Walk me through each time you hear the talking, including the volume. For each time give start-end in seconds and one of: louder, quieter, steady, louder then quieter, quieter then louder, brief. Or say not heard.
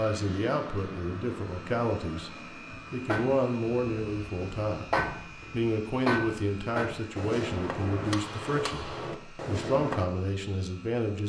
0.0-11.2 steady.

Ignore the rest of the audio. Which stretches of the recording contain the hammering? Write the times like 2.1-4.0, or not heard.
2.7-10.1.